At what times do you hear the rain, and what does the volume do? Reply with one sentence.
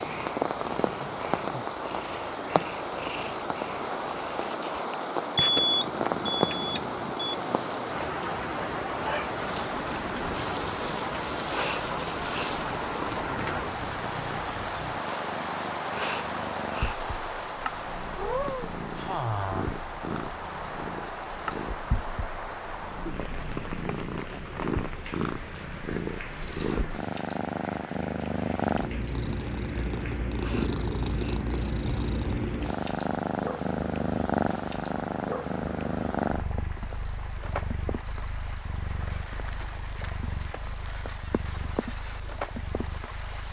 The rain can be heard from 0.0 to 43.4 s, getting quieter.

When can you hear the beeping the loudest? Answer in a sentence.
The loudest moment of the beeping is at 6 seconds.